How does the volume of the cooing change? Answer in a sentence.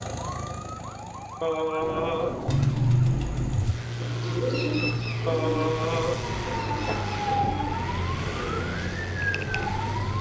The loudness of the cooing goes down.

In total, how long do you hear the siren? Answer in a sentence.
The siren can be heard for 10 seconds in total.